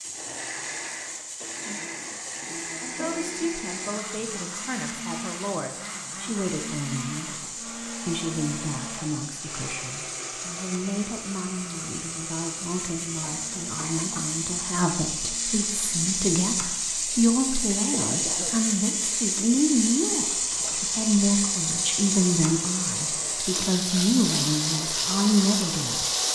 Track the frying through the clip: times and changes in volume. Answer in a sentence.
The frying can be heard from 0.0 to 26.2 s, getting louder.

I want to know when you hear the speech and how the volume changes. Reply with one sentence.
The speech can be heard from 2.8 to 26.1 s, getting louder.